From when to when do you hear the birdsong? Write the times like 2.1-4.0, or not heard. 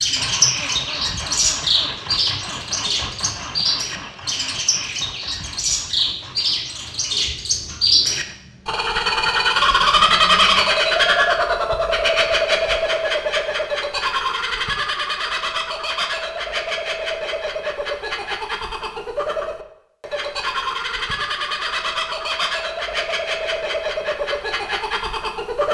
0.0-25.7.